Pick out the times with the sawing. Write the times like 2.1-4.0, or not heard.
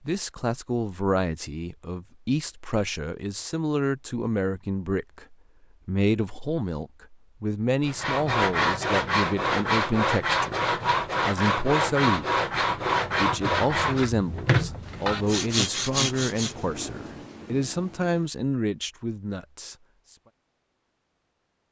7.8-16.6.